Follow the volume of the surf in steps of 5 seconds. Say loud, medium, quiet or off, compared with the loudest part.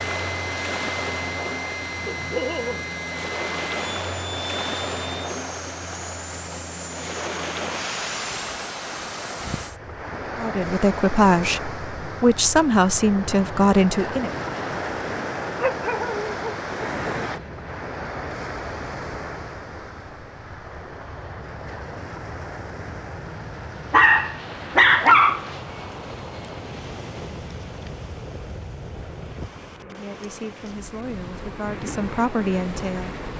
loud, loud, loud, loud, medium, quiet, medium.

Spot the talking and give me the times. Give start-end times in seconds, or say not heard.
10.3-14.3, 29.8-33.2.